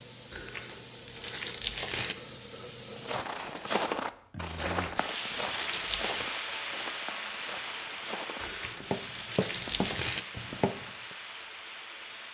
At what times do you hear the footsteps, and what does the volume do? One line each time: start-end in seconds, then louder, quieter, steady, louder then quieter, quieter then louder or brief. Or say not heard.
3.0-11.2 quieter then louder.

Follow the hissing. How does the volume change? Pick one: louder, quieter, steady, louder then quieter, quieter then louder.
louder then quieter.